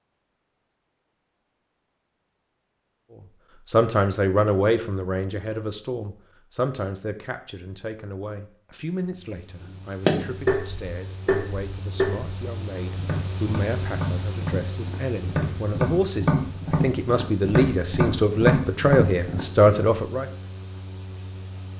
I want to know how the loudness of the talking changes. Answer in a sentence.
The loudness of the talking goes down, then up.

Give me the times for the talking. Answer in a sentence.
The talking can be heard from 3.7 to 20.2 s.